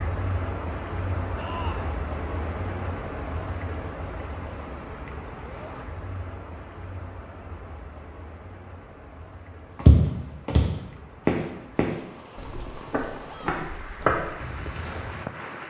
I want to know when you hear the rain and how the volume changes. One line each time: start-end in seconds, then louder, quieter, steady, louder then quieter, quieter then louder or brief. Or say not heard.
0.0-15.6 quieter then louder.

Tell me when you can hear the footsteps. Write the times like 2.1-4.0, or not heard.
9.8-15.2.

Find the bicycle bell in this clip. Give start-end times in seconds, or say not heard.
not heard.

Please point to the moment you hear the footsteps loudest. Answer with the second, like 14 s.
10 s.